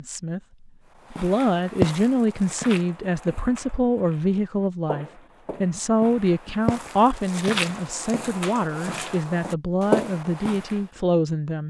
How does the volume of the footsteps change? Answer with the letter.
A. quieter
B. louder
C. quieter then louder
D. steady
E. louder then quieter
C.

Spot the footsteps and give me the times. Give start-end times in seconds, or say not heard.
1.1-10.8.